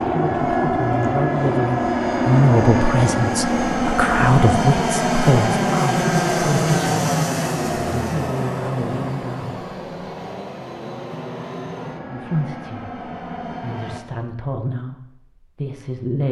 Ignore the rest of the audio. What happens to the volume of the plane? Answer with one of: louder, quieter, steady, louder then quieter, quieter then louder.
quieter.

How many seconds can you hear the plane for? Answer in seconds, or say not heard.
14 s.